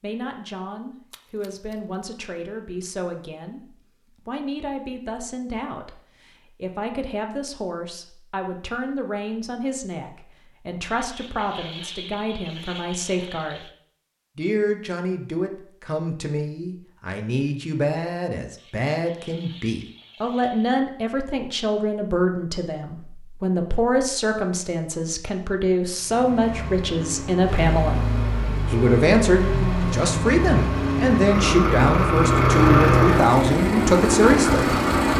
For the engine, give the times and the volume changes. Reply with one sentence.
The engine can be heard from 25.9 to 35.1 s, getting louder.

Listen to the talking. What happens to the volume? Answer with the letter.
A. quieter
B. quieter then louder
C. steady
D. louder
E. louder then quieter
D.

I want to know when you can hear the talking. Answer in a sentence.
You can hear the talking from 0.0 to 3.6 s, from 4.2 to 13.7 s, from 14.3 to 28.1 s and from 28.7 to 34.8 s.